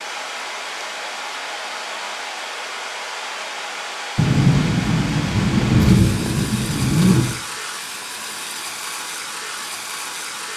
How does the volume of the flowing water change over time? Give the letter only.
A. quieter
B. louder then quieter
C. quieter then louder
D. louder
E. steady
E.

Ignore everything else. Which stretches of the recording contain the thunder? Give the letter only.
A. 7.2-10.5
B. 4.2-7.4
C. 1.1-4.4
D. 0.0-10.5
B.